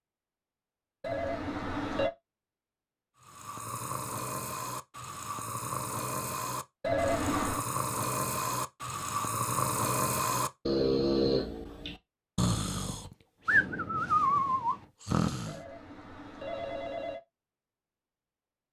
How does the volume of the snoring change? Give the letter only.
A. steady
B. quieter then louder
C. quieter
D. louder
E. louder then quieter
D.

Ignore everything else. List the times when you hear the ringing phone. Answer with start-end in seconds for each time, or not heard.
1.0-2.1, 6.8-7.7, 15.4-17.2.